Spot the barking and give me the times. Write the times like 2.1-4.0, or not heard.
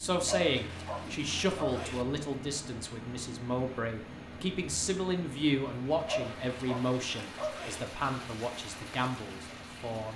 0.2-2.0, 6.0-7.8.